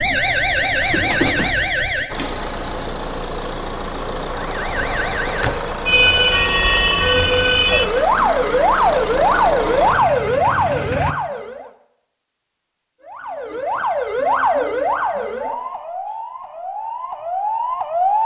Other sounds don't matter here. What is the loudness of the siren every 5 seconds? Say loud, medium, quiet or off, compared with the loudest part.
loud, loud, loud, medium.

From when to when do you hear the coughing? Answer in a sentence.
You can't hear the coughing here.